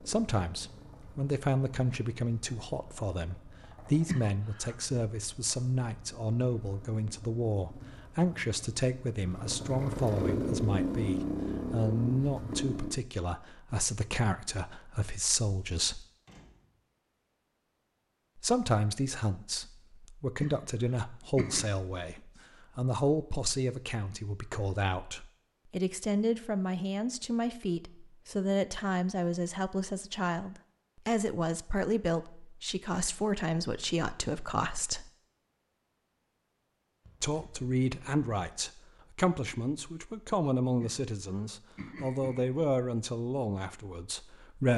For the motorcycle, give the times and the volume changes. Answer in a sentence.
You can hear the motorcycle from 0.0 to 12.9 s, getting louder.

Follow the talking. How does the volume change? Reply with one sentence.
The loudness of the talking stays about the same.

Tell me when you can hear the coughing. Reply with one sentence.
You can hear the coughing from 4.0 to 4.8 s, from 20.4 to 21.6 s and from 40.8 to 42.5 s.